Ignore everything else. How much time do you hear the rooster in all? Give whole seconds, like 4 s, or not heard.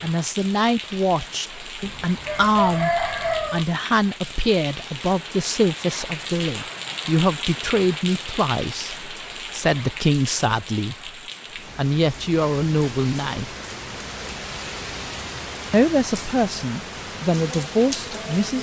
2 s.